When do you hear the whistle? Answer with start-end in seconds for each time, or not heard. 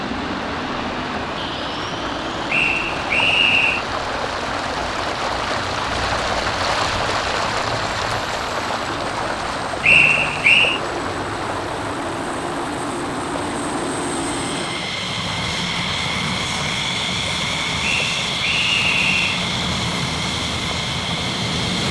2.5-3.9, 9.8-10.8, 17.8-19.4.